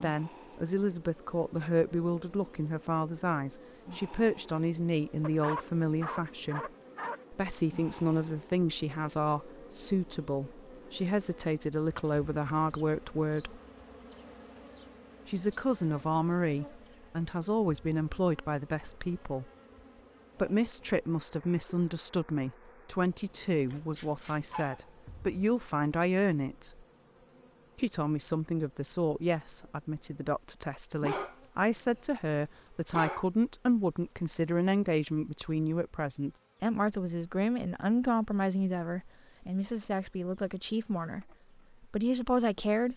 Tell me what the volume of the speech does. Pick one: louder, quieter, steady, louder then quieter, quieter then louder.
steady.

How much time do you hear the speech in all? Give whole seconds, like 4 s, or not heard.
39 s.